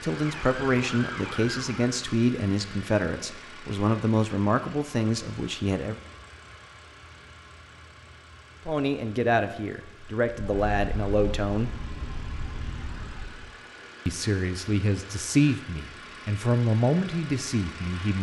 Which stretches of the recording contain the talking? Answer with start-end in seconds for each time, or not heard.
0.0-6.0, 8.7-11.7, 14.1-18.1.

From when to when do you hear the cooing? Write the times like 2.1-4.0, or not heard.
not heard.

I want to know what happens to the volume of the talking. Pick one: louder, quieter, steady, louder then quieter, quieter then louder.
steady.